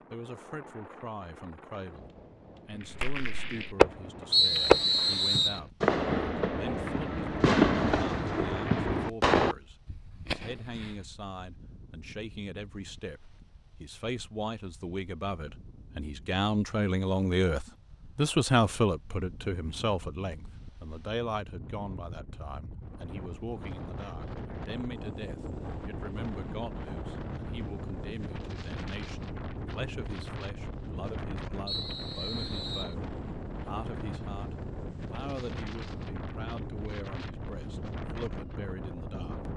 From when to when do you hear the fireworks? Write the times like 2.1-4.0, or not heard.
2.8-5.2, 5.8-10.9.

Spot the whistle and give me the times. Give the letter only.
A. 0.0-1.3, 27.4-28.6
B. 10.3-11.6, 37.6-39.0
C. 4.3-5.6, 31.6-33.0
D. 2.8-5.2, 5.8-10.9
C.